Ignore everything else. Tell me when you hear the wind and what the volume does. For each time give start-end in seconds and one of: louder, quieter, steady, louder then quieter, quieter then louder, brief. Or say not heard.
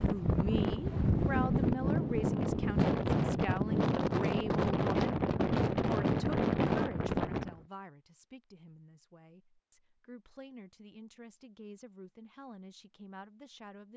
0.0-7.6 steady.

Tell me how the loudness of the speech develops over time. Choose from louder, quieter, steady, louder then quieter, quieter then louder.
quieter.